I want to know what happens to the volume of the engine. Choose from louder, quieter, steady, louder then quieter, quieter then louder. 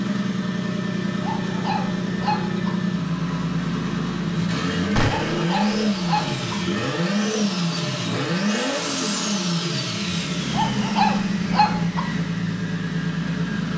steady.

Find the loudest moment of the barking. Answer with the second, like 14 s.
11 s.